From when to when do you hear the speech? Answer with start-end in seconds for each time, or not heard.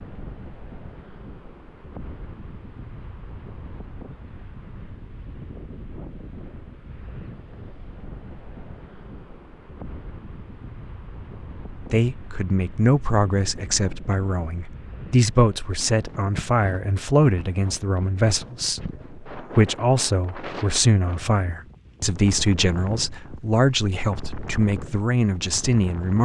11.7-26.2.